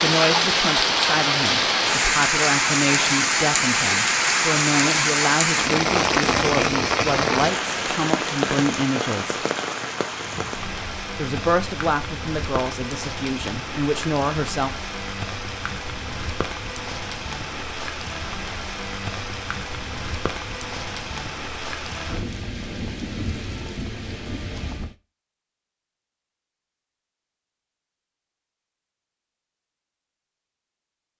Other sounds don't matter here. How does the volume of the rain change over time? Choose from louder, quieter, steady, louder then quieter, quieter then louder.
quieter.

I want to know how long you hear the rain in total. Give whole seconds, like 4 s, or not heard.
25 s.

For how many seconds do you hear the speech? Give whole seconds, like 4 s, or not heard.
13 s.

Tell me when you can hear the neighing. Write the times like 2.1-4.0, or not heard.
not heard.